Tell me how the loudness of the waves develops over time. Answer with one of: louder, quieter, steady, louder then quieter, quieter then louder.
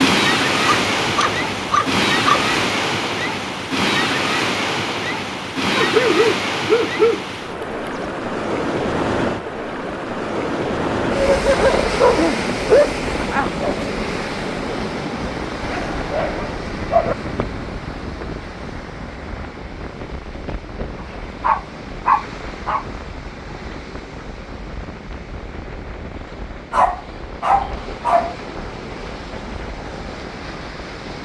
quieter.